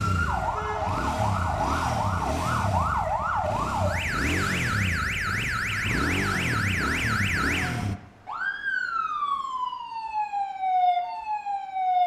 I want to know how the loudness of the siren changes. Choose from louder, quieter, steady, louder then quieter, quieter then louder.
steady.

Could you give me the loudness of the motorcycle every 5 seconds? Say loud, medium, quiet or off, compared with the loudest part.
loud, loud, off.